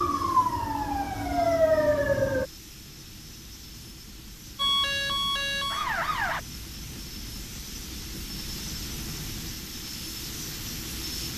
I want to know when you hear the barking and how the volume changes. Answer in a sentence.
The barking can't be heard in this clip.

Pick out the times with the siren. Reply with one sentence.
The siren can be heard from 0.0 to 2.5 s and from 4.5 to 6.4 s.